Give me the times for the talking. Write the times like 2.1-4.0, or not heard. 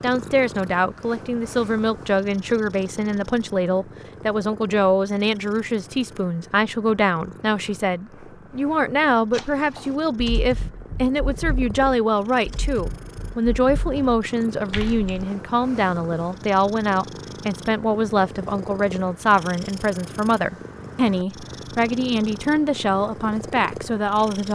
0.0-24.5.